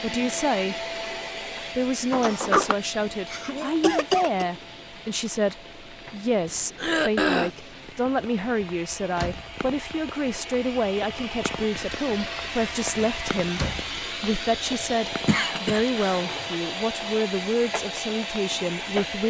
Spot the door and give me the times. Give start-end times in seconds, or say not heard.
2.1-2.8, 8.6-9.6, 12.9-14.0.